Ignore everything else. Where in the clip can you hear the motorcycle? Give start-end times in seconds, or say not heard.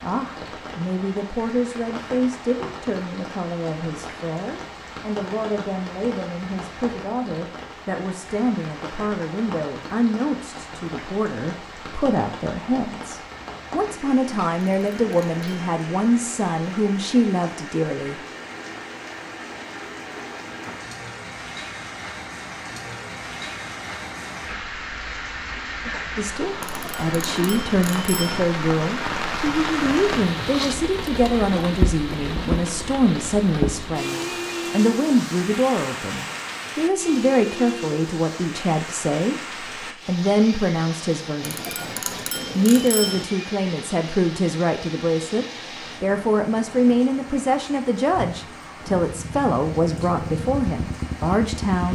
48.8-51.9.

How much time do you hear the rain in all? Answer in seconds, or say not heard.
52 s.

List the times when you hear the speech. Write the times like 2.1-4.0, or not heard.
0.0-18.2, 26.1-41.8, 42.5-51.9.